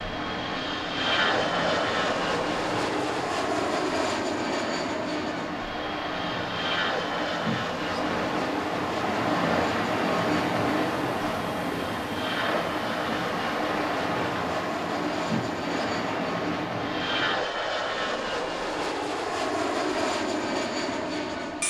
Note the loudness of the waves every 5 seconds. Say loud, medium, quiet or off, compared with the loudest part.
medium, loud, loud, loud, off.